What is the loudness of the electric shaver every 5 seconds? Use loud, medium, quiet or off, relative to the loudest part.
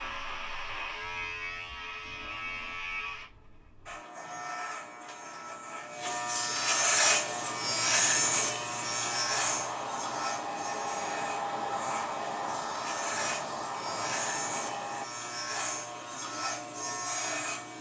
medium, loud, medium, medium.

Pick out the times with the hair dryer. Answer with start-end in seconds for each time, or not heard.
7.0-15.1.